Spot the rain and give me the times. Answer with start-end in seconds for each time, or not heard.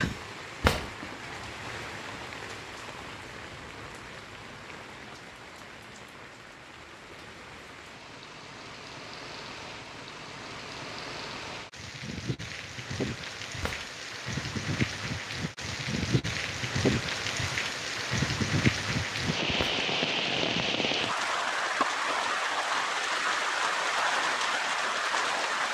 0.0-25.6.